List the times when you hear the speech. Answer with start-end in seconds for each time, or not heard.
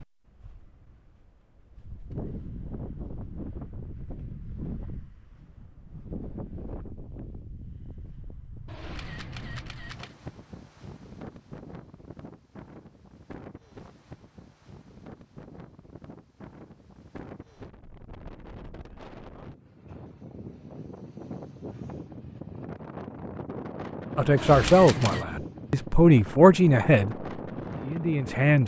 24.1-28.6.